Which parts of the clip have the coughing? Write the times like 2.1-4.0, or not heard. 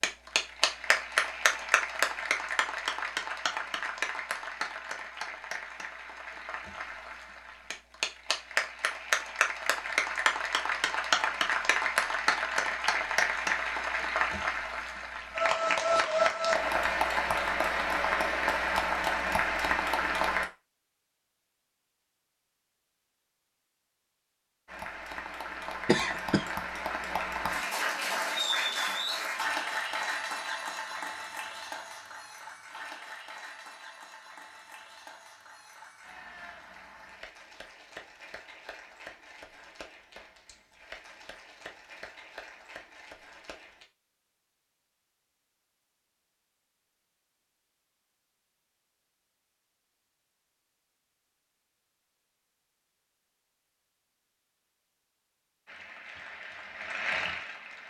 25.9-26.5.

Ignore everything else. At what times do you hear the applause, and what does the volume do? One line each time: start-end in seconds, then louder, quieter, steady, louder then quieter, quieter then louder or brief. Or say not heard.
0.0-20.4 quieter then louder
24.6-43.9 quieter
55.6-57.8 brief.